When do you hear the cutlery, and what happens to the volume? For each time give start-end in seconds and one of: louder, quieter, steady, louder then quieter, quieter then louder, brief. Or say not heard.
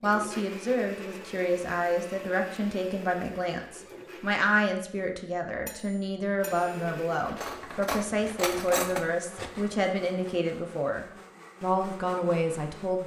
5.7-9.7 louder.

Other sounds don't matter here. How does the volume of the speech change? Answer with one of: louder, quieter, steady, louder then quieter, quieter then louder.
steady.